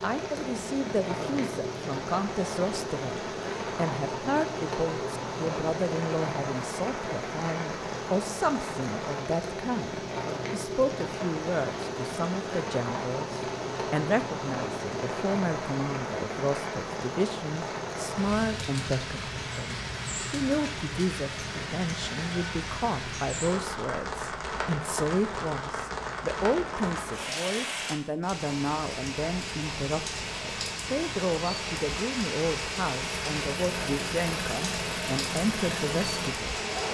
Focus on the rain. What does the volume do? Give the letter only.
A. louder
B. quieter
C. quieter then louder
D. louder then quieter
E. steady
E.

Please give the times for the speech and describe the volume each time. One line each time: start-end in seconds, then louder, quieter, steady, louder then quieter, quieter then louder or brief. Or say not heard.
0.0-36.8 steady.